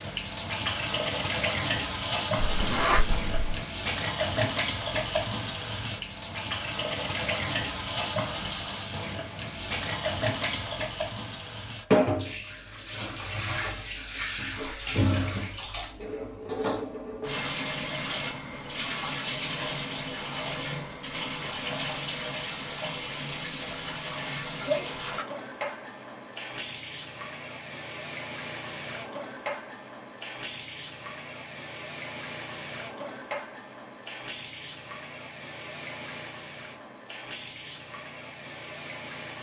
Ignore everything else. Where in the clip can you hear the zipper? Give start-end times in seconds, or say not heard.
2.4-3.6.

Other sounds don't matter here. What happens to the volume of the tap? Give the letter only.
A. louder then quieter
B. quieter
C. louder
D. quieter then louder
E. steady
B.